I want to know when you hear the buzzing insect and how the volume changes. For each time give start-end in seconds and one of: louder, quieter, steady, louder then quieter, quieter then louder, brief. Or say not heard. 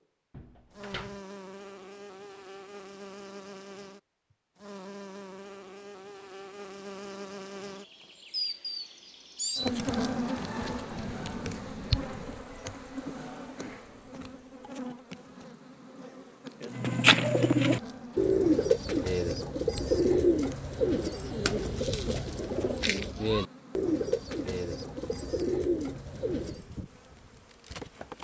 0.7-28.1 louder then quieter.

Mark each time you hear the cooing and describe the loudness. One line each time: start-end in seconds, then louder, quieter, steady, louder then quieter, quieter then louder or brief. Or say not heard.
16.7-26.7 quieter.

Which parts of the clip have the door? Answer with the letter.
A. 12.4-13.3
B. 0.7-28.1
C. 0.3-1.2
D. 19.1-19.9
C.